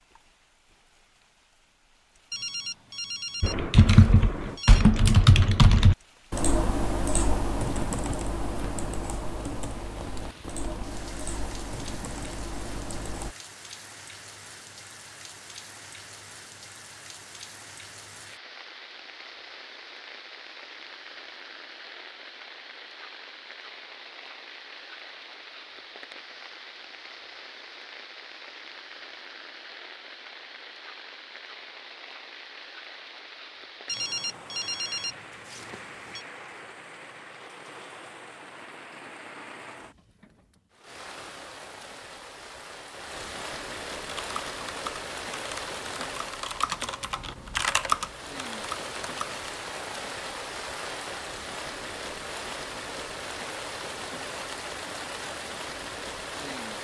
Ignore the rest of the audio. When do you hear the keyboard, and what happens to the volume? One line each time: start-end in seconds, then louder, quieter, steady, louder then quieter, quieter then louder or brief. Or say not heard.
3.4-13.3 quieter
44.1-49.5 louder then quieter.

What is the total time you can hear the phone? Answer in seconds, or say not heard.
5 s.